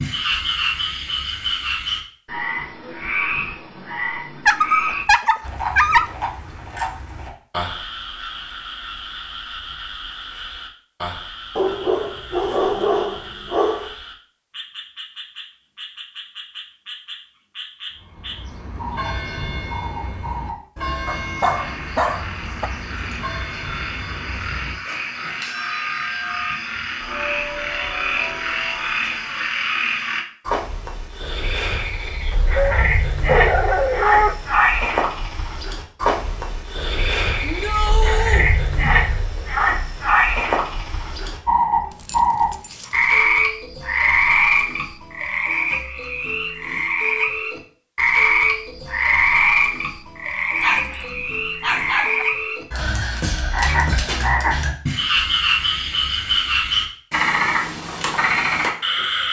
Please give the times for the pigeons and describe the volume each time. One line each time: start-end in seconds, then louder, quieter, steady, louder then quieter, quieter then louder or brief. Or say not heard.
not heard.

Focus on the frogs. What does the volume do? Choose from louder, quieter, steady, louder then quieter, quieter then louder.
quieter then louder.